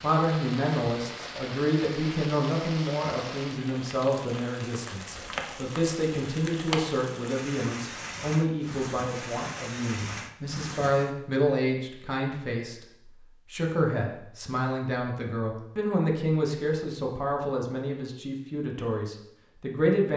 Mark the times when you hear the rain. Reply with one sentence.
The rain can be heard from 0.0 to 11.2 s.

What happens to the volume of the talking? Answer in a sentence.
The volume of the talking stays about the same.